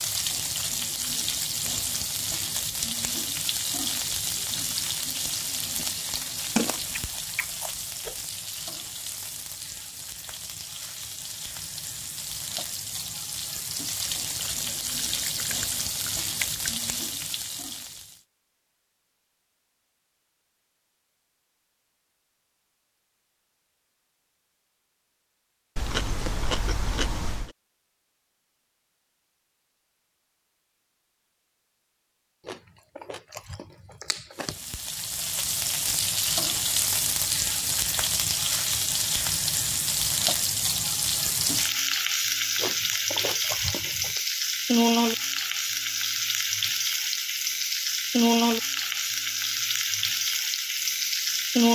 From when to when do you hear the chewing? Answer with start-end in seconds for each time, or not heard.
6.5-8.2, 14.1-16.7, 25.8-27.6, 32.5-34.5, 42.5-44.2.